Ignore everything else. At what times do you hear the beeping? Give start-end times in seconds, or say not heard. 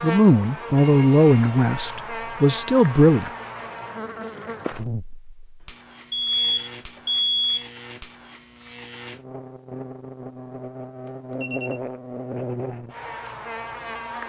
0.8-1.6, 6.1-7.7, 11.1-11.8.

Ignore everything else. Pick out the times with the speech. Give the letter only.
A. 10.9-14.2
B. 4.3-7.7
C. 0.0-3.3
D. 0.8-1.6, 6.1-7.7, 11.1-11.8
C.